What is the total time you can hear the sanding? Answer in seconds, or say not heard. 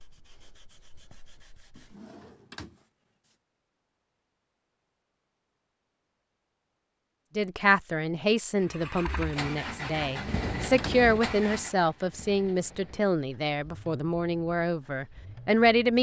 2 s.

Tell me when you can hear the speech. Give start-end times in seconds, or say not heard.
7.3-15.9.